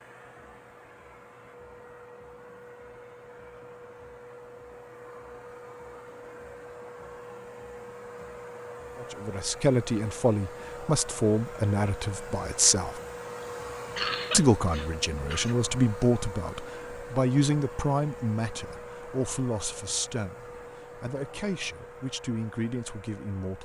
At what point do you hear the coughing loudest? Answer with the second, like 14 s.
14 s.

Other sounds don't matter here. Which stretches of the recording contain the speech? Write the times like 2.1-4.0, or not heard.
9.0-13.0, 14.3-23.5.